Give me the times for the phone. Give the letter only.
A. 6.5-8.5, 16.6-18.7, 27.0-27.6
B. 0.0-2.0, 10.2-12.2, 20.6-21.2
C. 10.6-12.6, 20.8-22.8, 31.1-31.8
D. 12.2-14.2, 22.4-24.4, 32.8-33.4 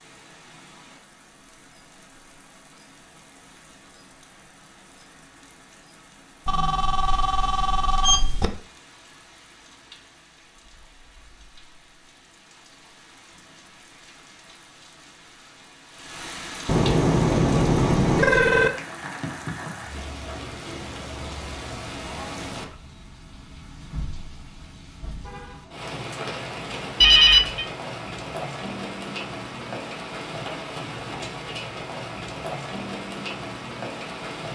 A.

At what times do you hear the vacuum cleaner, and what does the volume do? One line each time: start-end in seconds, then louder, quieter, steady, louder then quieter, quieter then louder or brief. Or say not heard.
not heard.